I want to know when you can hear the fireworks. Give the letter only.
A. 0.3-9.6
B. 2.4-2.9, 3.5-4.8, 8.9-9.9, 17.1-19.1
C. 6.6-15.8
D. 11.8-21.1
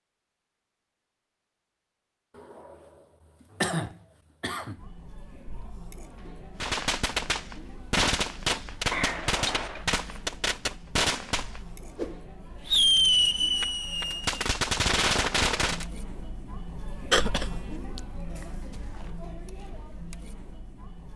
C.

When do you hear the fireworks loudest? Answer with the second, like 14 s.
13 s.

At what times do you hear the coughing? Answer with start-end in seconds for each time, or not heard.
2.4-2.9, 3.5-4.8, 8.9-9.9, 17.1-19.1.